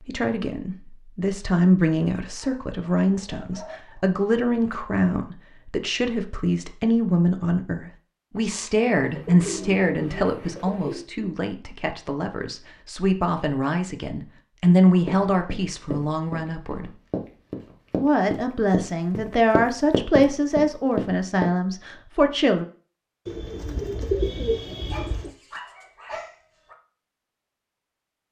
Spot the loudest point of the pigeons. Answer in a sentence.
The loudest moment of the pigeons is at 24 seconds.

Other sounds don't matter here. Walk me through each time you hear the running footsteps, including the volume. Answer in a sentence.
You can hear the running footsteps from 14.7 to 21.5 s, getting louder.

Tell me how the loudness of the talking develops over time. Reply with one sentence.
The volume of the talking stays about the same.